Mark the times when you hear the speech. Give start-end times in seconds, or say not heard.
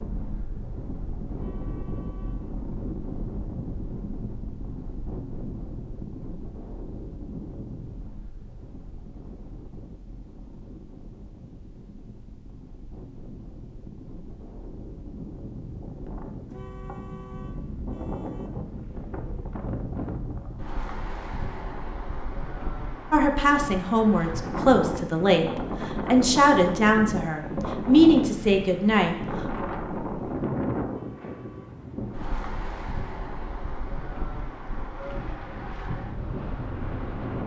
23.1-29.6.